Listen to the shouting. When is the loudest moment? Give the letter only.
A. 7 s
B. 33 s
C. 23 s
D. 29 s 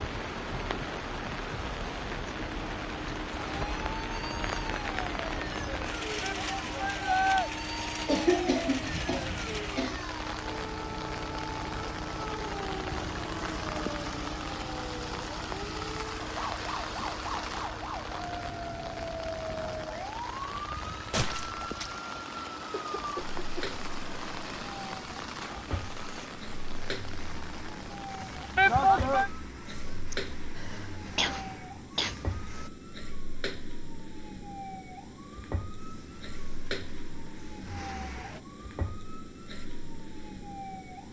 D.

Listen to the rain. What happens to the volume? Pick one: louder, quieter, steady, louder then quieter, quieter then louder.
quieter.